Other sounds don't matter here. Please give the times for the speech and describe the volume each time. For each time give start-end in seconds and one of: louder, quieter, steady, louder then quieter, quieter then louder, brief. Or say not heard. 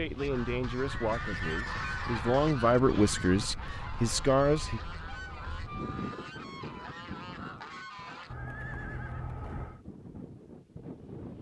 0.0-4.8 quieter then louder.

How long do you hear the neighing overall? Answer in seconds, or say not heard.
3 s.